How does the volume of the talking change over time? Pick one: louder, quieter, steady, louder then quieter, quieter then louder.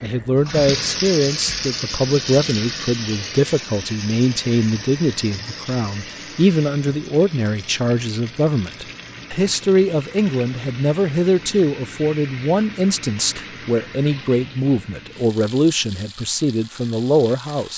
steady.